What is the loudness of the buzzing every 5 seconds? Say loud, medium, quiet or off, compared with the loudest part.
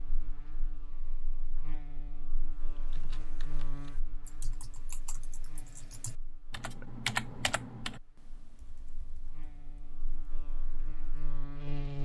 medium, quiet, loud.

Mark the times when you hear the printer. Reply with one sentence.
The printer can't be heard in this clip.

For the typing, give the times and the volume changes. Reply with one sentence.
The typing can be heard from 2.5 to 11.2 s, getting louder then quieter.